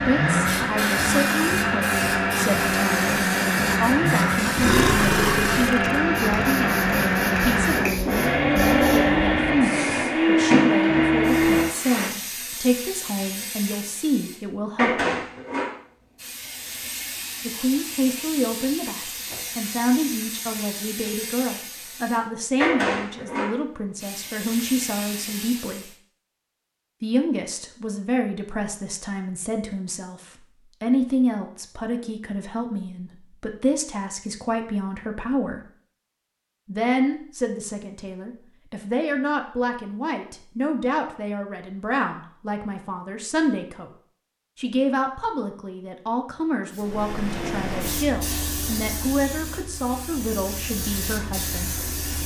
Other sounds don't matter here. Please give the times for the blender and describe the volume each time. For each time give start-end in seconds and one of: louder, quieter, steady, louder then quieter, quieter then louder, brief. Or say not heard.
0.0-12.1 steady.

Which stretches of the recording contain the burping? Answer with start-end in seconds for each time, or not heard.
4.5-6.0.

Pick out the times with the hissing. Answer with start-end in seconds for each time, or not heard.
0.3-25.9, 46.7-52.2.